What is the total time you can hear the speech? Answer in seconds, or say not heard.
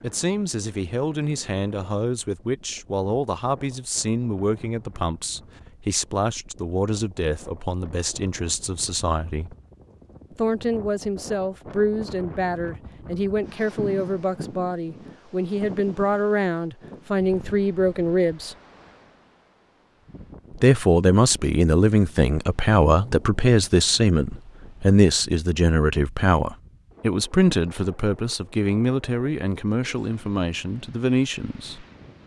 29 s.